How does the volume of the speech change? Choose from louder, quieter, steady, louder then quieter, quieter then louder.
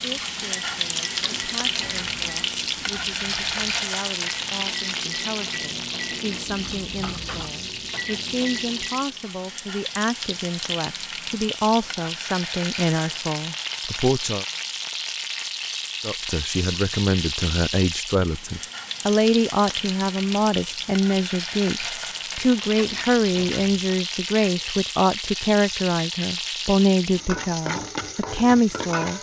louder.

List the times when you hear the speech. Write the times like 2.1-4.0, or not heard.
0.0-14.4, 16.1-29.1.